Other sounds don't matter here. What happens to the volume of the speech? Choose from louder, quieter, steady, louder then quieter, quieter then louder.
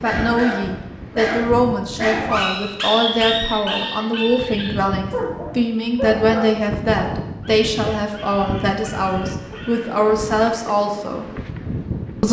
steady.